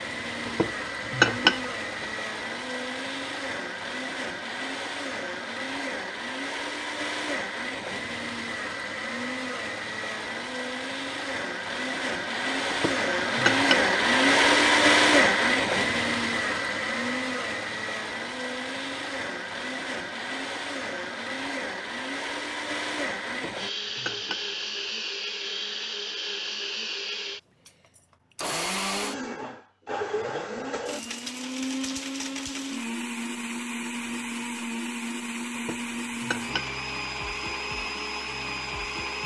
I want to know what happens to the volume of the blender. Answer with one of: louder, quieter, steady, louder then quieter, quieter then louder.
louder then quieter.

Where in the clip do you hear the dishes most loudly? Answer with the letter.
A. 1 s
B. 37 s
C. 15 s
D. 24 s
A.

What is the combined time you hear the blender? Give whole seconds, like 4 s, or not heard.
39 s.